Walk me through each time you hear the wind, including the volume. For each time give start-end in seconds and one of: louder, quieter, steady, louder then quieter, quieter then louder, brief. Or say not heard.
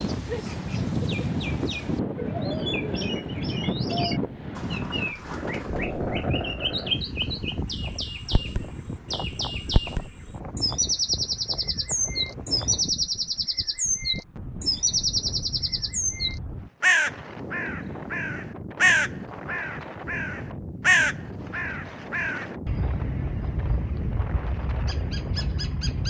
0.0-26.0 quieter.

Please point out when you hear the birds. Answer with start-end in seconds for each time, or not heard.
0.0-26.0.